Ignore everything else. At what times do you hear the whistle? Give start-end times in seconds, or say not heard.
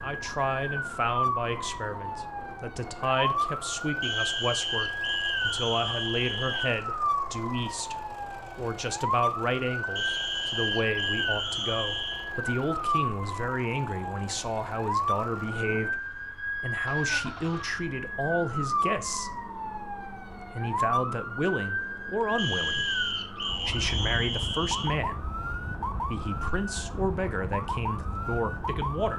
4.0-6.8, 9.9-12.3, 22.4-25.0.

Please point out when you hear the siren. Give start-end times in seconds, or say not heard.
0.0-29.1.